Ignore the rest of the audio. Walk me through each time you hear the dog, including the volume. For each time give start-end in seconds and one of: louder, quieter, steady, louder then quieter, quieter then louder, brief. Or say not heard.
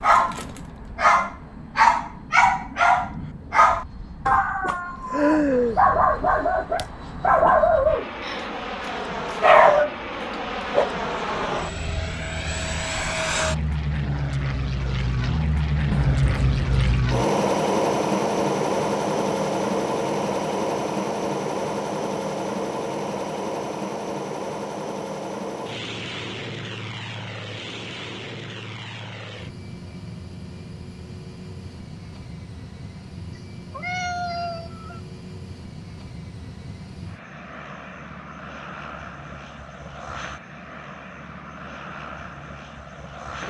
0.0-9.9 steady.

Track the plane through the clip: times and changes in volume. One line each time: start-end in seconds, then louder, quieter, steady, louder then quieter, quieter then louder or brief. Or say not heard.
0.0-43.4 louder then quieter.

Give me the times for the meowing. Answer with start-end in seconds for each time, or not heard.
15.9-17.1, 33.3-35.0.